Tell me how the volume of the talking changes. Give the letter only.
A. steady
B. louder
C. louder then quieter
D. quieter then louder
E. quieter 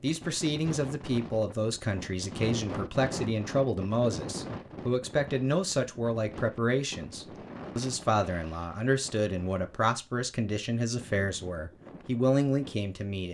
A.